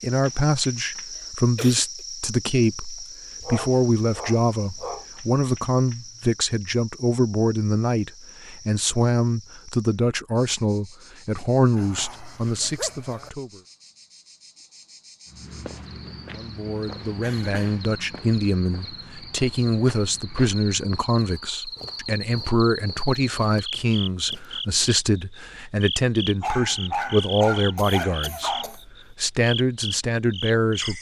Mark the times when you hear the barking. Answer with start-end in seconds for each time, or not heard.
3.4-5.0, 11.8-13.3, 26.4-28.8.